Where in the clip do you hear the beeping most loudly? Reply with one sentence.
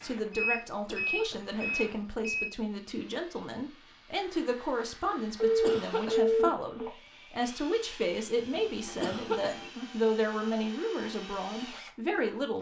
The volume of the beeping peaks at 6 seconds.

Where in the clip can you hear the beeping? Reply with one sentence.
The beeping can be heard from 0.3 to 2.5 s, from 5.3 to 6.9 s and from 8.5 to 9.8 s.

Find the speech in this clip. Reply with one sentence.
You can hear the speech from 0.0 to 12.5 s.